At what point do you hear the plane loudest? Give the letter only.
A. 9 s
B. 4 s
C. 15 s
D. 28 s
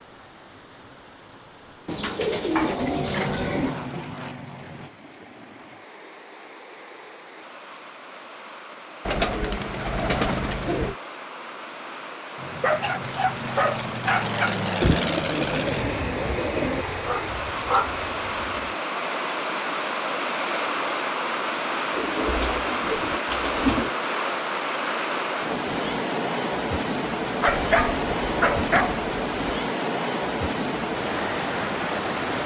C.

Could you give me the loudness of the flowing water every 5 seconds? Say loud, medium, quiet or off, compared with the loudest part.
quiet, quiet, medium, loud, loud, loud, loud.